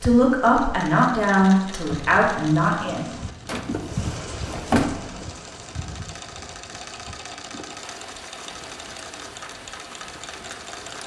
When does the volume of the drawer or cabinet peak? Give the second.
5 s.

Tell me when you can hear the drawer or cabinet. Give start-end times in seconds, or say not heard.
3.5-5.3.